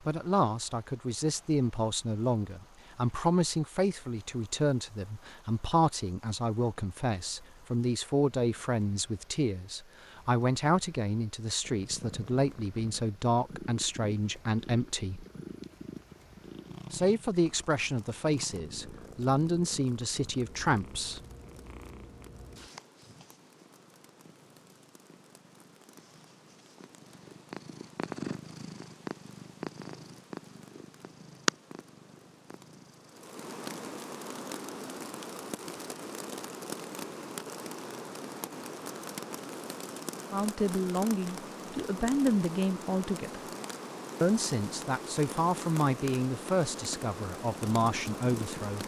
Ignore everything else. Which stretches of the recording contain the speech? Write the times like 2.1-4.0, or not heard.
0.1-15.2, 16.9-21.2, 40.3-43.5, 44.2-48.8.